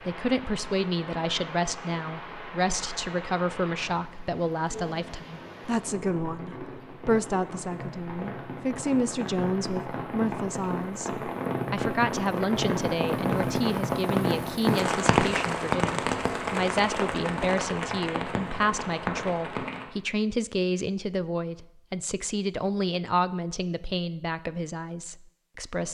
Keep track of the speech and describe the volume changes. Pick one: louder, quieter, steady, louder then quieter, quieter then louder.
steady.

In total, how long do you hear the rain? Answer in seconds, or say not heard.
20 s.